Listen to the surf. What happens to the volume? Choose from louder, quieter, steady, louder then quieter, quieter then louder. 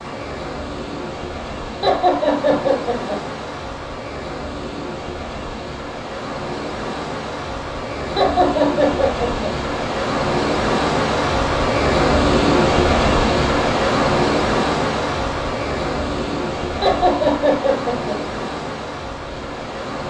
louder then quieter.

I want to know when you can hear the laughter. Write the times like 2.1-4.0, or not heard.
1.8-3.2, 8.2-9.5, 16.8-18.1.